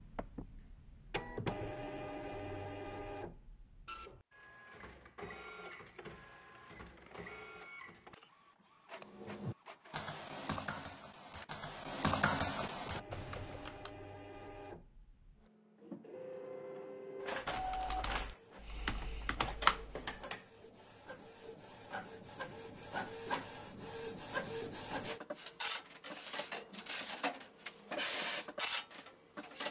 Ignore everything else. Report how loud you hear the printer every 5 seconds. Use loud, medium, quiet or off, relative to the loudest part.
medium, quiet, quiet, medium, medium, loud.